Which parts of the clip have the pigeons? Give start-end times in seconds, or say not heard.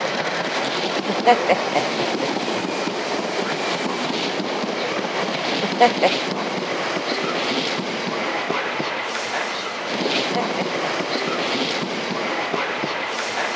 not heard.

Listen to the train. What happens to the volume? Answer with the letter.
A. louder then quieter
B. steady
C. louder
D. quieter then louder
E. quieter
B.